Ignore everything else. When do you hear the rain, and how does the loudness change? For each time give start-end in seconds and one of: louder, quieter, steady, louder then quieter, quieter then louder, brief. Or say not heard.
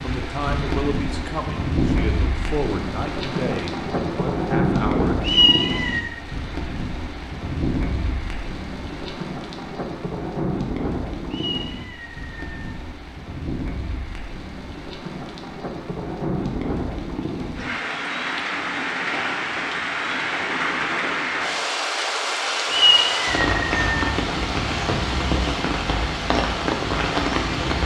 0.0-27.8 quieter then louder.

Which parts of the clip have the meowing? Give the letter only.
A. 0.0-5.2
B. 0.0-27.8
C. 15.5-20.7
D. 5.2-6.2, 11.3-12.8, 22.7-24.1
D.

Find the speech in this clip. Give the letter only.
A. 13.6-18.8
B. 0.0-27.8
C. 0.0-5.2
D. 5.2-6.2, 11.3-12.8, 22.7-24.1
C.